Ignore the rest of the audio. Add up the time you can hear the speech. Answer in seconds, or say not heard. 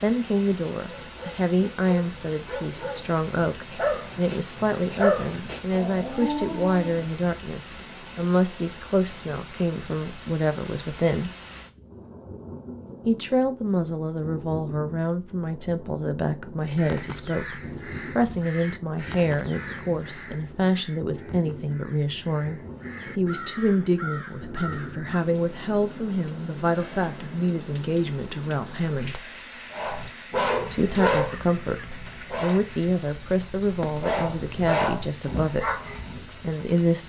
33 s.